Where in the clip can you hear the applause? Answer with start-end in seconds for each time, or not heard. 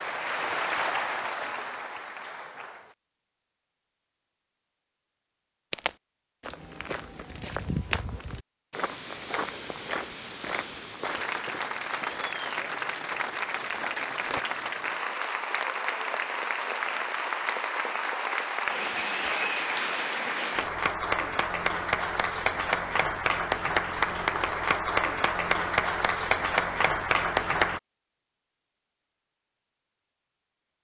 0.0-3.0, 11.0-27.8.